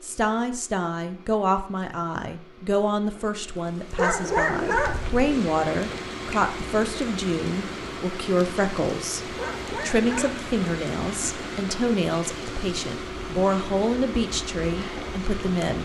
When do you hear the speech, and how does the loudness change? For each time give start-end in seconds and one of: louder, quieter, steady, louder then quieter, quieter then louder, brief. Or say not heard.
0.0-15.7 steady.